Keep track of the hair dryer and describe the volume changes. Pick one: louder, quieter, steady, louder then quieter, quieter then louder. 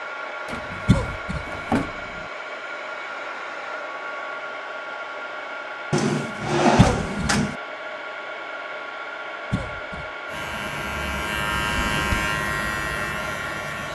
steady.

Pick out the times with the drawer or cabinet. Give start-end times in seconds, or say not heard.
0.5-2.2, 5.9-7.5, 11.6-12.2.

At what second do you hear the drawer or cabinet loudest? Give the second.
7 s.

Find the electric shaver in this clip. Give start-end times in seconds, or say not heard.
10.2-13.9.